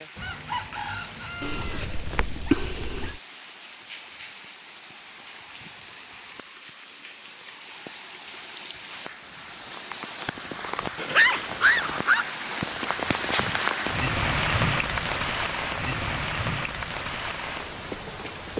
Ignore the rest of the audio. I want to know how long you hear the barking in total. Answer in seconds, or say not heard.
3 s.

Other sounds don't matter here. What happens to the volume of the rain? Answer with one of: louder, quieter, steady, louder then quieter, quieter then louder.
louder.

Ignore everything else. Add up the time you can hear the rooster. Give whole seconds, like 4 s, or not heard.
2 s.